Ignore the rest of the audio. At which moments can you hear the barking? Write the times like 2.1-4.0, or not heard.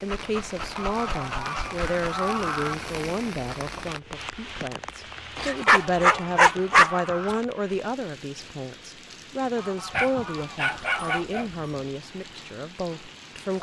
0.1-2.0, 5.3-7.0, 9.9-11.7.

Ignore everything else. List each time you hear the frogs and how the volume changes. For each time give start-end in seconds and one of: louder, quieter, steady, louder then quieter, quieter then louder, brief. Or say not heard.
not heard.